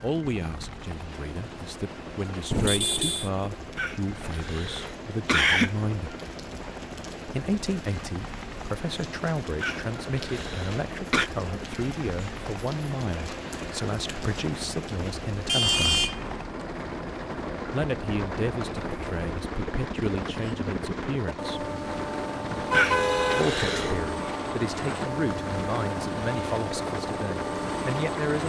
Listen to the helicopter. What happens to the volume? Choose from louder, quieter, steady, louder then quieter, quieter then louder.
louder.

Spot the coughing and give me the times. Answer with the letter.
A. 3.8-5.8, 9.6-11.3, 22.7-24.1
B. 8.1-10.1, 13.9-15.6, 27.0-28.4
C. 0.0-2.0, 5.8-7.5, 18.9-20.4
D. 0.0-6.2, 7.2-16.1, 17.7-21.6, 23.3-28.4
A.